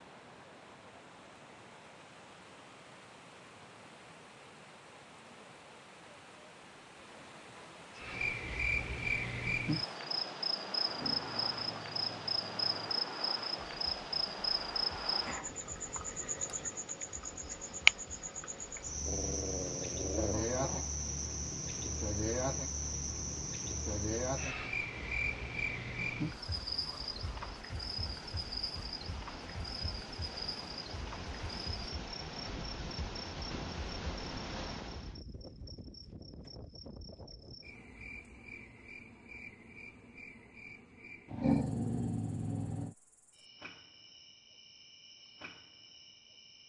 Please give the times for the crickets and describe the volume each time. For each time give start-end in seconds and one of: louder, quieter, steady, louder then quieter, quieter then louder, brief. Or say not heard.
8.0-46.6 quieter.